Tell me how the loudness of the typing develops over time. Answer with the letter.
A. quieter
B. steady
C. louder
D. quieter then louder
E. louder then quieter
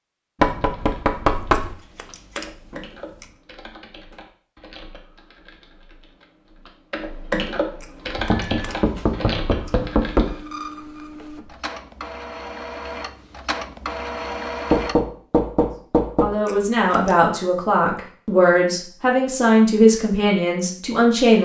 D.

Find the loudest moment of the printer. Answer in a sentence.
The loudest moment of the printer is at 14 seconds.